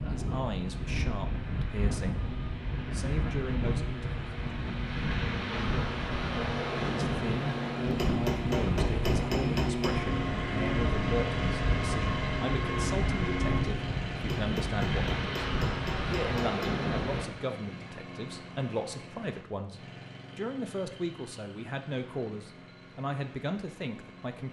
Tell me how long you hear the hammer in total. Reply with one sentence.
You can hear the hammer for 5 seconds altogether.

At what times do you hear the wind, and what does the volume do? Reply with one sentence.
You can hear the wind from 0.0 to 17.3 s, at a steady volume.